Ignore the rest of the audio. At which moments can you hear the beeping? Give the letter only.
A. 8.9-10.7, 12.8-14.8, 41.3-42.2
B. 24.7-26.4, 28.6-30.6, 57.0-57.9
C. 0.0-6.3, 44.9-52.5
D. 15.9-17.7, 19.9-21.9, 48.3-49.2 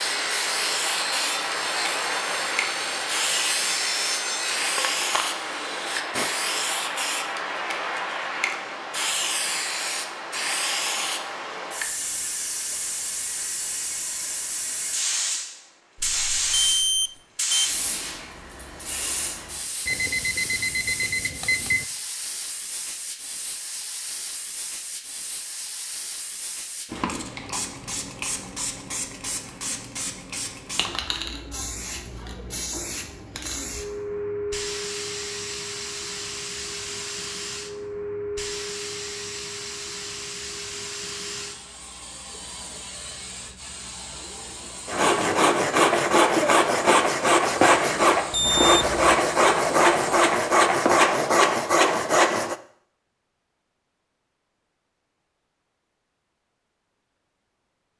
D.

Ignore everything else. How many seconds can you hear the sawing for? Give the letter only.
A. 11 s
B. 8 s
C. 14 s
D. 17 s
C.